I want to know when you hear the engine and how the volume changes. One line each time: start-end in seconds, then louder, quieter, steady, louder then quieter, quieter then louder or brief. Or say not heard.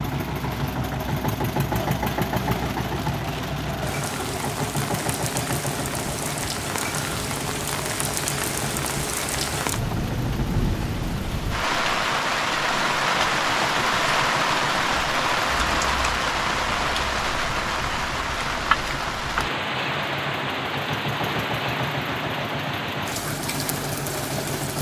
0.0-24.7 quieter then louder.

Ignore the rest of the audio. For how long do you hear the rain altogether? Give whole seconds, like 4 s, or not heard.
25 s.